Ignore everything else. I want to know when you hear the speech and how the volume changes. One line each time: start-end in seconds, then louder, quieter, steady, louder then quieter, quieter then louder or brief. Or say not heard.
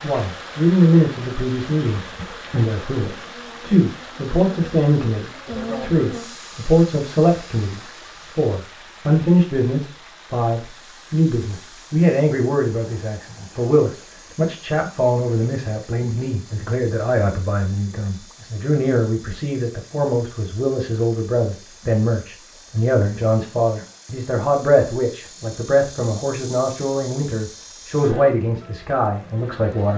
0.0-29.9 steady.